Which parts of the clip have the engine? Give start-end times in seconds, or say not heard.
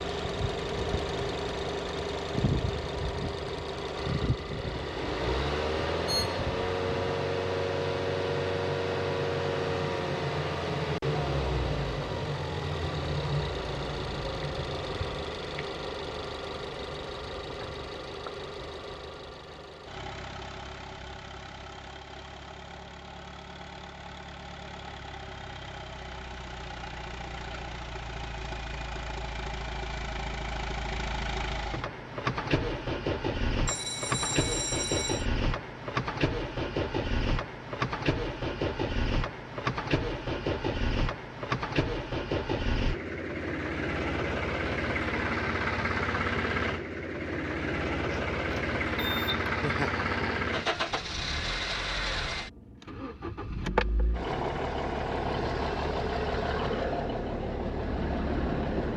0.0-58.9.